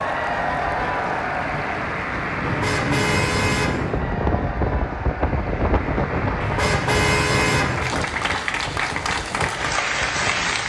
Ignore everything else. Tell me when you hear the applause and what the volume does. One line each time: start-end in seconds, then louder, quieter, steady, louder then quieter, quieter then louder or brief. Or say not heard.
0.0-10.6 quieter then louder.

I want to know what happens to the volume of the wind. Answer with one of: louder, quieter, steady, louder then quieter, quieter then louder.
louder then quieter.